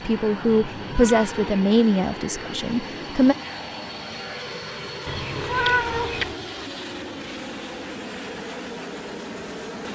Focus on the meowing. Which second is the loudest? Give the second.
6 s.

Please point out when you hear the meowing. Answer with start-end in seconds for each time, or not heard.
0.7-1.6, 5.0-6.3.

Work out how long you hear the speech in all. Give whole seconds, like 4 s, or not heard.
3 s.